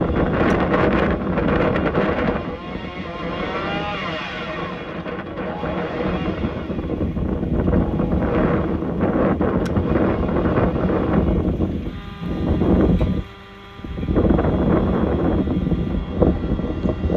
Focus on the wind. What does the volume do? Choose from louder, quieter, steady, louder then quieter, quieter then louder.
quieter then louder.